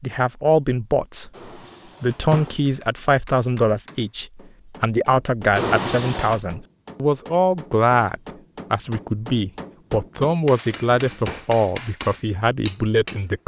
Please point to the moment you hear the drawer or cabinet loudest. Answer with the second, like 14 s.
6 s.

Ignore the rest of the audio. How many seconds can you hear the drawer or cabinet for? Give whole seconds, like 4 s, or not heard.
3 s.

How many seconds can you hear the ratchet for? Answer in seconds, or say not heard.
not heard.